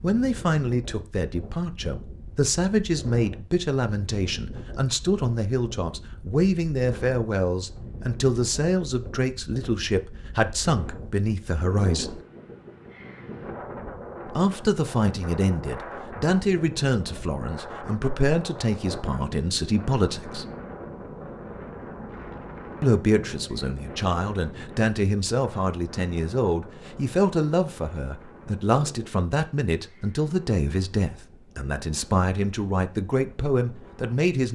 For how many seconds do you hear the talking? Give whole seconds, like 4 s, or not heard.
30 s.